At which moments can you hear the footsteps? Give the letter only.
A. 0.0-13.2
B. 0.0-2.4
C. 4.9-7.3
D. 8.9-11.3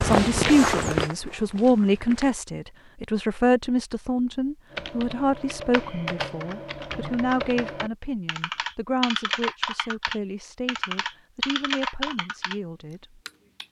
B.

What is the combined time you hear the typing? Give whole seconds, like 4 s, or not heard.
9 s.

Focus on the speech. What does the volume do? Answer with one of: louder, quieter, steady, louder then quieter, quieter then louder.
quieter.